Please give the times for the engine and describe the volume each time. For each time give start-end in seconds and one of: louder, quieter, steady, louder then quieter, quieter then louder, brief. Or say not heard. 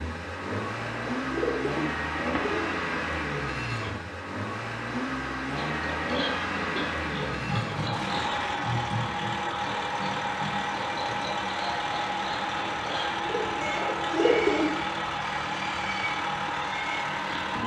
0.0-17.6 steady.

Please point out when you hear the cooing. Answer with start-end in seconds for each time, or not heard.
0.4-2.7, 13.2-14.8.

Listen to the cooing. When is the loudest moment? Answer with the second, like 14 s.
14 s.